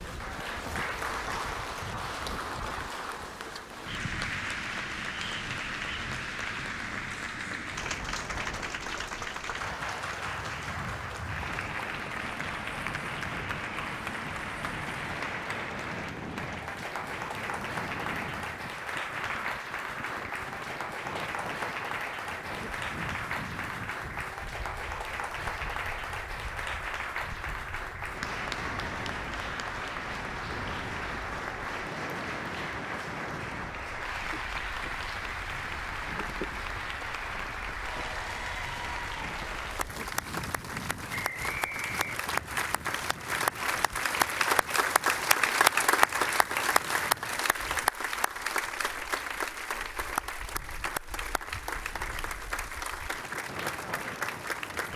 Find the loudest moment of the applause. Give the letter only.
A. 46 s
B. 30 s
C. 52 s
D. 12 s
A.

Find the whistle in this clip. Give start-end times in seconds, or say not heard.
41.1-42.3.